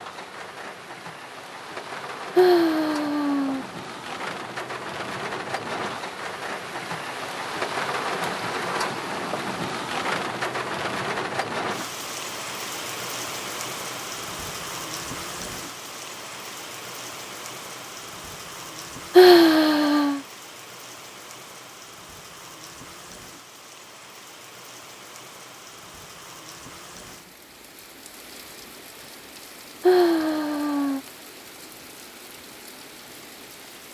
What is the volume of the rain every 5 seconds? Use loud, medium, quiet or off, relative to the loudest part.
medium, loud, loud, medium, quiet, quiet, quiet.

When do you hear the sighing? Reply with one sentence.
The sighing can be heard from 2.4 to 3.6 s, from 19.1 to 20.2 s and from 29.8 to 31.0 s.